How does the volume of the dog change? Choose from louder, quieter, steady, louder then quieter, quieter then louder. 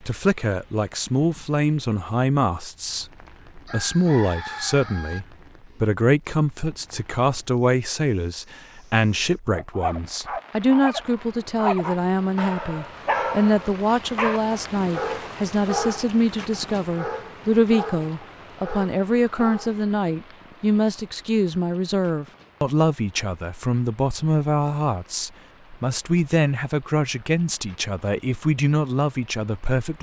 quieter.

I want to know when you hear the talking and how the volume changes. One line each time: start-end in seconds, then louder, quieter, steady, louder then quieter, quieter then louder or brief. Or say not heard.
0.0-29.9 steady.